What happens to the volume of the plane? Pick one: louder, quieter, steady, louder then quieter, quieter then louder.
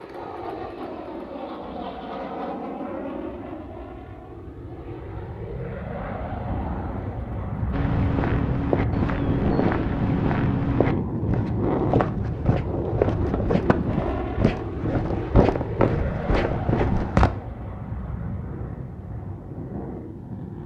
louder then quieter.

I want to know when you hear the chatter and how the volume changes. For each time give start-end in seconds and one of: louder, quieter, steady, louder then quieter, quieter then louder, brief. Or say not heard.
not heard.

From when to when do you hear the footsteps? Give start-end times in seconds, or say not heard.
7.7-17.3.